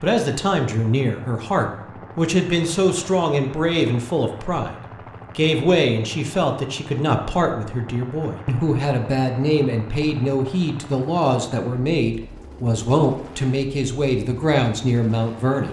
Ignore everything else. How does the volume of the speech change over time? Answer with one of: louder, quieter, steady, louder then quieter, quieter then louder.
steady.